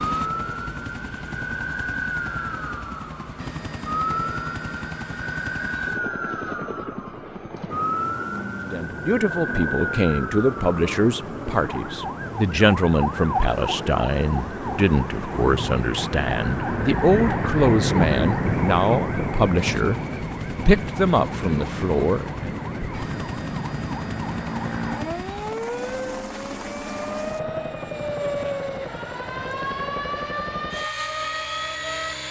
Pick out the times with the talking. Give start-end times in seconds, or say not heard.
8.7-20.0, 20.6-22.6.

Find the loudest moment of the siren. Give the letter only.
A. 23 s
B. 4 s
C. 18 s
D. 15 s
C.